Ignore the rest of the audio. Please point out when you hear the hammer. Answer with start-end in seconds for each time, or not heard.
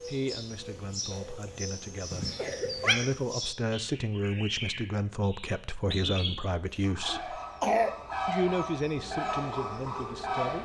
not heard.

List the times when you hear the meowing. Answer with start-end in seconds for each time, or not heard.
2.1-3.0.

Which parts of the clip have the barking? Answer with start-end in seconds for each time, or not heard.
not heard.